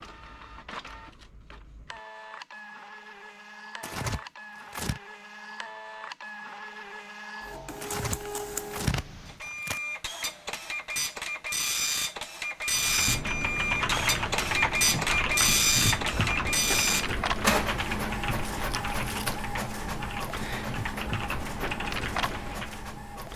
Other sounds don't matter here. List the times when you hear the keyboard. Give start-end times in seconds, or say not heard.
12.7-22.8.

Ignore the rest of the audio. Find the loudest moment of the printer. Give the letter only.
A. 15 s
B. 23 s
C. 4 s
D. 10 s
A.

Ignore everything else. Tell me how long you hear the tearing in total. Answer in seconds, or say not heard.
4 s.